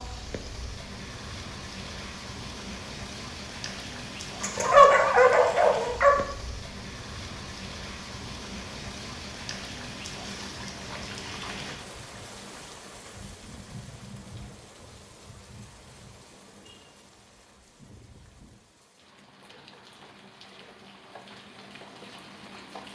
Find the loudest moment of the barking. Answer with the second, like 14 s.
5 s.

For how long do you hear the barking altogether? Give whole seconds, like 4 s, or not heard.
2 s.